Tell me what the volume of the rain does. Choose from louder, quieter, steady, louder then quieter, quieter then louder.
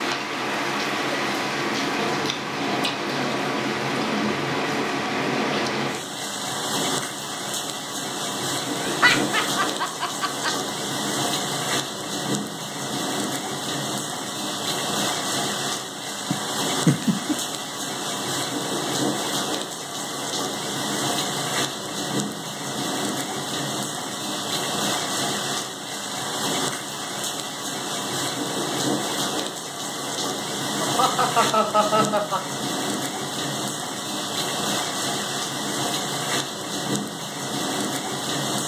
steady.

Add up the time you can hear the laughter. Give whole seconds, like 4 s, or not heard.
5 s.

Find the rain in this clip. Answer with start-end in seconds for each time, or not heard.
0.0-38.6.